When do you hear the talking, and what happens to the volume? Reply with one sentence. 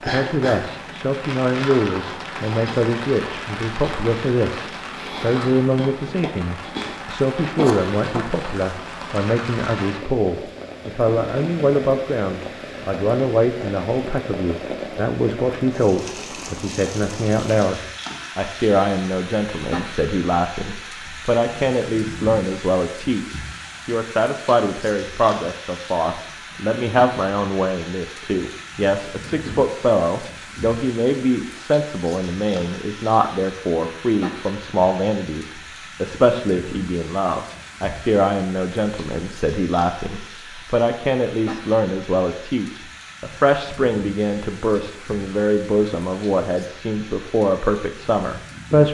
The talking can be heard from 0.0 to 48.8 s, at a steady volume.